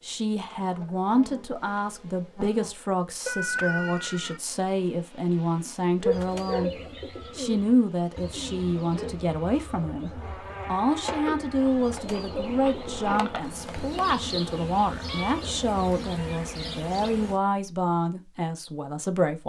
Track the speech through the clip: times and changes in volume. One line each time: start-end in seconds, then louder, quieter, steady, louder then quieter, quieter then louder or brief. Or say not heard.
0.0-19.4 steady.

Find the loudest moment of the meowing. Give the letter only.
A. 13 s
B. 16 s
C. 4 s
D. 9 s
C.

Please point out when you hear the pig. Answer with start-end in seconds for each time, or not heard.
not heard.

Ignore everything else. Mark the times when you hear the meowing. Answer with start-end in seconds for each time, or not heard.
3.2-4.4, 15.0-15.4.